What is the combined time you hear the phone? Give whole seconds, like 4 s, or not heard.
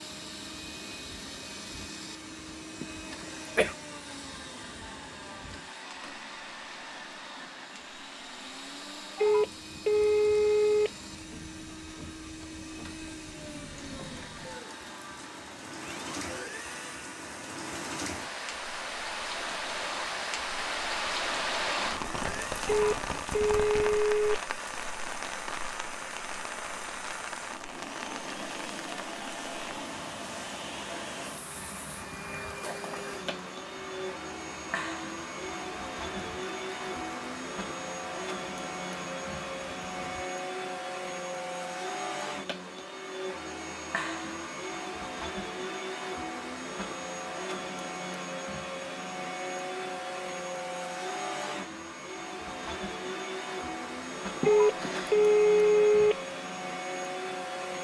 5 s.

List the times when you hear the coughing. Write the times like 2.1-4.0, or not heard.
2.8-3.8, 54.4-55.1.